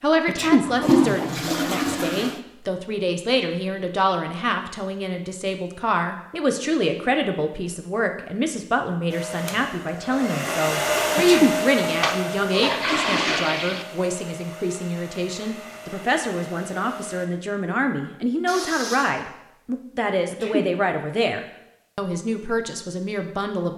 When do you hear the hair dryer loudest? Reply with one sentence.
The volume of the hair dryer peaks at 11 seconds.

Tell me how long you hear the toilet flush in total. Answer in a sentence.
You can hear the toilet flush for 5 seconds altogether.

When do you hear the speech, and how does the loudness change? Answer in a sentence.
The speech can be heard from 0.0 to 23.7 s, at a steady volume.